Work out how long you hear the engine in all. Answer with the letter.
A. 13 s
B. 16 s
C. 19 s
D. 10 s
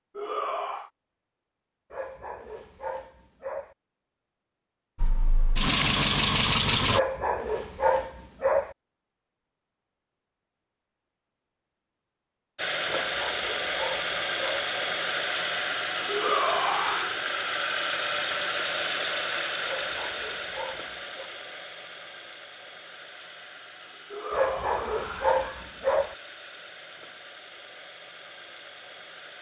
C.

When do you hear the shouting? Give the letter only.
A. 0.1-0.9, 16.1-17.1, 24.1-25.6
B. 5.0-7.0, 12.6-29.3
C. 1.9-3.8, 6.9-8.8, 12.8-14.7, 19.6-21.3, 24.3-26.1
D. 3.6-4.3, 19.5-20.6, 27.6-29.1
A.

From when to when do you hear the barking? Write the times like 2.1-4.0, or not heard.
1.9-3.8, 6.9-8.8, 12.8-14.7, 19.6-21.3, 24.3-26.1.